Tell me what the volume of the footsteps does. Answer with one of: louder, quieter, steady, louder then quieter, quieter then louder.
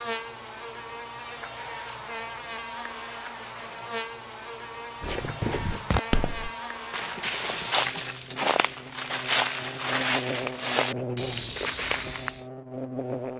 steady.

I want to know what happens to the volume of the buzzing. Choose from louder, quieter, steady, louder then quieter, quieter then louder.
steady.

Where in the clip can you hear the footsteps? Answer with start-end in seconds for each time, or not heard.
5.0-12.4.